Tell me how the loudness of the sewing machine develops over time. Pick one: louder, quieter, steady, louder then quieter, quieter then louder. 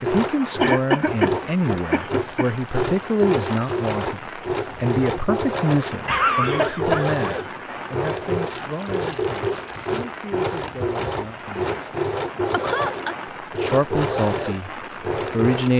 steady.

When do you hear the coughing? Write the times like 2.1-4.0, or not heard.
0.6-2.5, 6.0-7.5, 12.5-13.2.